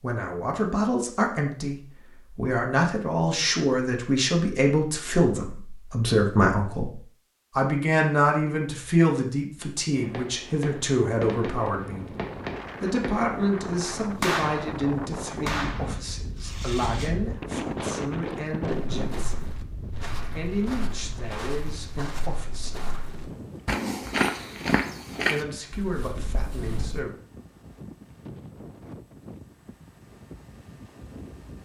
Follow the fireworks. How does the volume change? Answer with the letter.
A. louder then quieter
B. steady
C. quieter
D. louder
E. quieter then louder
A.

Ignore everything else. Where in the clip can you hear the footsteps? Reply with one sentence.
The footsteps can be heard from 18.6 to 27.1 s.